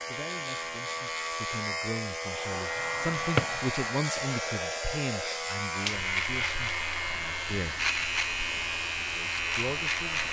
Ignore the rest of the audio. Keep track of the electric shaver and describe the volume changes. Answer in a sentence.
The volume of the electric shaver stays about the same.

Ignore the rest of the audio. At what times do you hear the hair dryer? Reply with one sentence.
You can hear the hair dryer from 2.1 to 10.2 s.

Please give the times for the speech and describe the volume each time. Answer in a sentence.
The speech can be heard from 0.1 to 7.8 s, getting louder then quieter; and briefly from 8.9 to 10.2 s.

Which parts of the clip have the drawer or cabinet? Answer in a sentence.
The drawer or cabinet can be heard from 2.8 to 3.6 s.